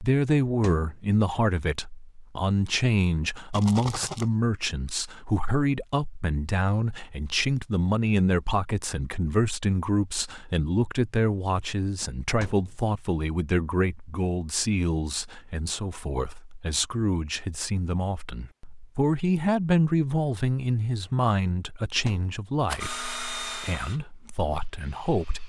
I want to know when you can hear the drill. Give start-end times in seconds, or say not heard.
22.8-25.4.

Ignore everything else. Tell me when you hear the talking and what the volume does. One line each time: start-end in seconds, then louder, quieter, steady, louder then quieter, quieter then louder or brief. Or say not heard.
0.0-25.4 steady.